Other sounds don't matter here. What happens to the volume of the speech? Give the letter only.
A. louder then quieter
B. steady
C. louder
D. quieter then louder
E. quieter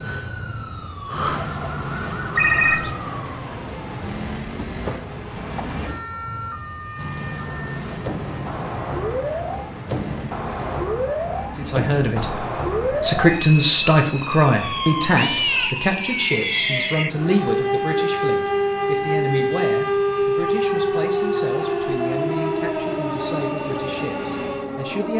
E.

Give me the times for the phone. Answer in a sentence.
The phone can be heard from 2.4 to 3.0 s.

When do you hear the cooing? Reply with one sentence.
You can't hear the cooing here.